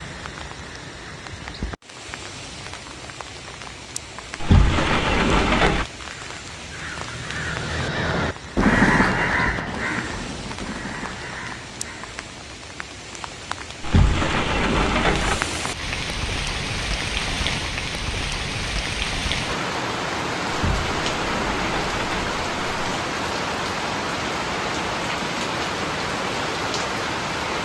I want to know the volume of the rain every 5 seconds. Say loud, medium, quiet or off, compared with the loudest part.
medium, medium, medium, loud, loud, loud.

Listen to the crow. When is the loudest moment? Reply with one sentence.
The loudest moment of the crow is at 9 seconds.